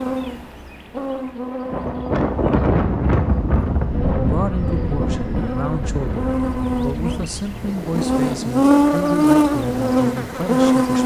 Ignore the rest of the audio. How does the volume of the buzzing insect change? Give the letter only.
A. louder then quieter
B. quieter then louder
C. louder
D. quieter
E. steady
C.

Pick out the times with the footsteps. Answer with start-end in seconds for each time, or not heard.
not heard.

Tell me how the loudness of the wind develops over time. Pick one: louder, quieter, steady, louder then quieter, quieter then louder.
quieter.